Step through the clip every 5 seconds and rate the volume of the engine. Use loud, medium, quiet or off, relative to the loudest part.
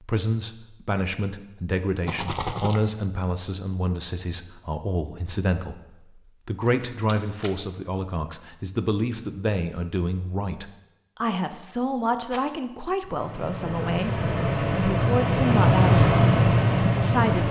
off, off, medium, loud.